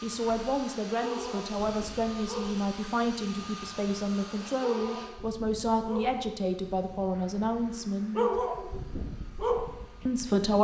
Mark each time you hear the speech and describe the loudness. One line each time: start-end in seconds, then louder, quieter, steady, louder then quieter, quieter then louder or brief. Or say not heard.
0.0-8.3 steady
10.1-10.5 brief.